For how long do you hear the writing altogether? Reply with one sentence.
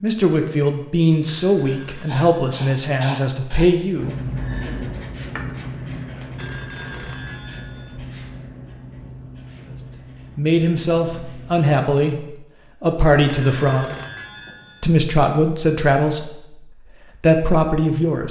You can hear the writing for 10 seconds altogether.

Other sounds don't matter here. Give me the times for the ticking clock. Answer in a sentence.
The ticking clock can't be heard in this clip.